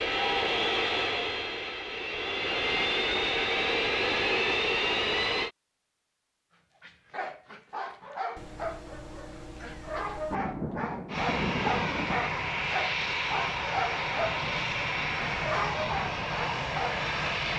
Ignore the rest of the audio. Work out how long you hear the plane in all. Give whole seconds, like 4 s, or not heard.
12 s.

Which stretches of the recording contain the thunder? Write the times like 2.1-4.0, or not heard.
10.3-12.3.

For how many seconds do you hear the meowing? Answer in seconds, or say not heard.
2 s.